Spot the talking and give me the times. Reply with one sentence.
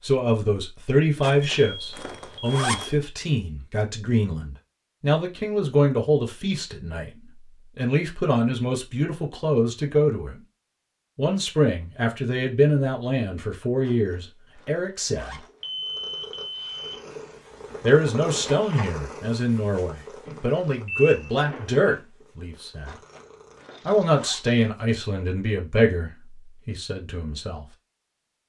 The talking can be heard from 0.0 to 7.1 s, from 7.8 to 10.4 s, from 11.2 to 15.4 s, from 17.8 to 22.9 s and from 23.9 to 27.6 s.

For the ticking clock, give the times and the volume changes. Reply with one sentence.
You can't hear the ticking clock here.